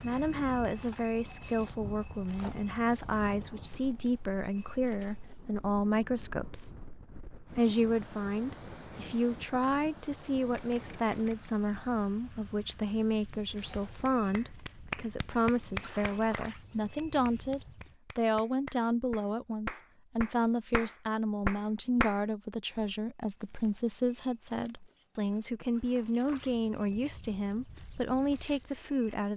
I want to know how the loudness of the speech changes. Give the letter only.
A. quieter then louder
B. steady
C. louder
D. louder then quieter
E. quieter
B.